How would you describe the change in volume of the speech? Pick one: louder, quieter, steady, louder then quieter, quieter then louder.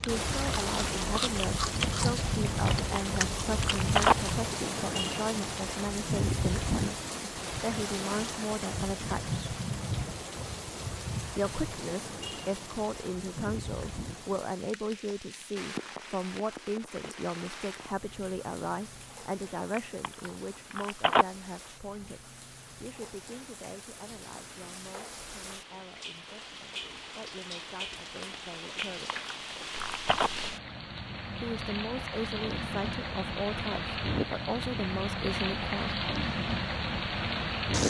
quieter then louder.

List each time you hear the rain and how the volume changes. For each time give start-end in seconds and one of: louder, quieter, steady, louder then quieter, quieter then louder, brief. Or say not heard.
0.0-37.8 quieter then louder.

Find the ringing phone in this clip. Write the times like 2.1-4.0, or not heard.
2.6-4.2, 19.7-21.2, 28.6-30.3.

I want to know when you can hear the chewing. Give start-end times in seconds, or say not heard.
0.0-4.2.